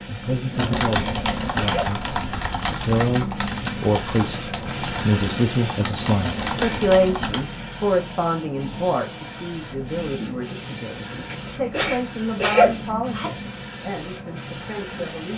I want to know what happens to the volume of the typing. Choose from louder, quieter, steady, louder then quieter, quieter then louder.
quieter then louder.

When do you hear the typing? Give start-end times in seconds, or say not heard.
0.5-7.5.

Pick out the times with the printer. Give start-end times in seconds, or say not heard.
0.0-15.3.